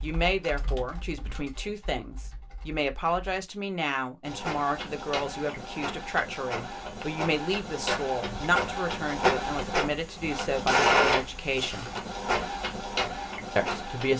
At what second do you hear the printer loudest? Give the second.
11 s.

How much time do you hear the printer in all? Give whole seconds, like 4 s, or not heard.
10 s.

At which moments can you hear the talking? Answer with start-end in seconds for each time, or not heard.
0.0-11.8, 13.6-14.1.